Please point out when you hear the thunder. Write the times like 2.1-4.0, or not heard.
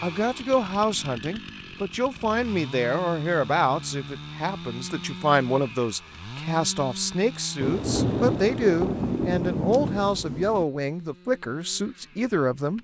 7.6-10.7.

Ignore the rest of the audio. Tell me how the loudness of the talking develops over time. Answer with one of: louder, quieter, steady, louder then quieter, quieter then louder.
steady.